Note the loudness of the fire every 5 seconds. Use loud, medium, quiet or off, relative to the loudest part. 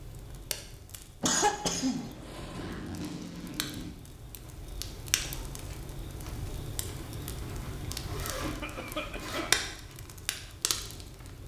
medium, loud, medium.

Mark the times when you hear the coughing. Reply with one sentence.
You can hear the coughing from 1.2 to 2.8 s and from 8.4 to 9.6 s.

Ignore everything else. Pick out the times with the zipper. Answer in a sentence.
The zipper can be heard from 2.5 to 4.0 s and from 7.2 to 9.7 s.